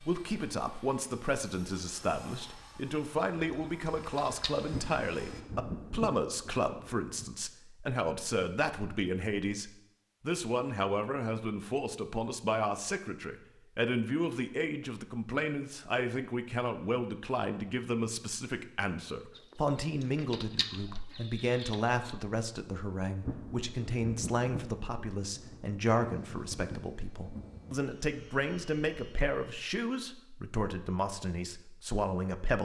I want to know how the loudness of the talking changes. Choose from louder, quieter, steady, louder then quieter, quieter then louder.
steady.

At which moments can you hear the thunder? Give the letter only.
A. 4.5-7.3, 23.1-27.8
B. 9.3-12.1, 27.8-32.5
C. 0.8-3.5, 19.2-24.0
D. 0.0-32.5
A.